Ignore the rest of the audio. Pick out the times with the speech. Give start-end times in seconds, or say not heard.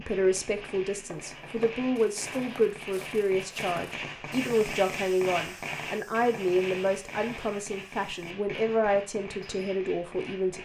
0.0-10.6.